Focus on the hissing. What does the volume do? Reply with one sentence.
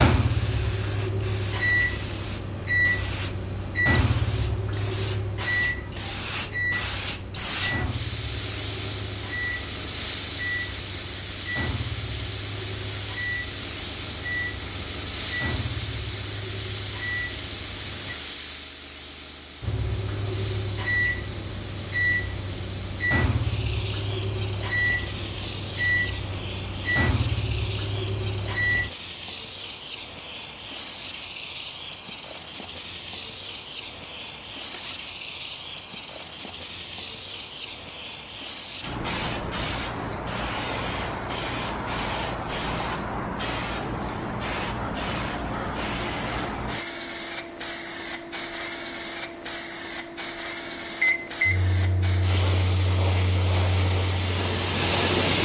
The volume of the hissing stays about the same.